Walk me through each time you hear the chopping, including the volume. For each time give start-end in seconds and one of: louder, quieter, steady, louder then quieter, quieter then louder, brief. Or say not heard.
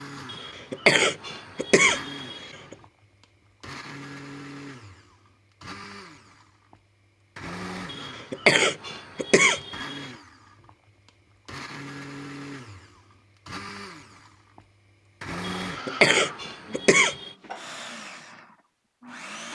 not heard.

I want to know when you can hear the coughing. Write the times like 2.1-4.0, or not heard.
0.3-2.8, 7.9-10.1, 15.4-17.3.